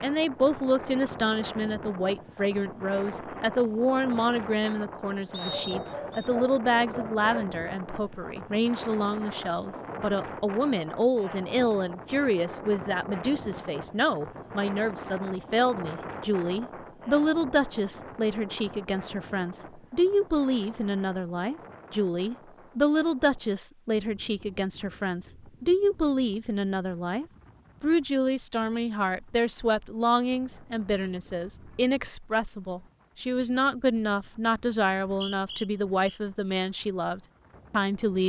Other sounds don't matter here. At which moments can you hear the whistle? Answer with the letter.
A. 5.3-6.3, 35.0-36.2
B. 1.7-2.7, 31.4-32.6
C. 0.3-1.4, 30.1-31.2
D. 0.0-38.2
A.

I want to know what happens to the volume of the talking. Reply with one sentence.
The loudness of the talking stays about the same.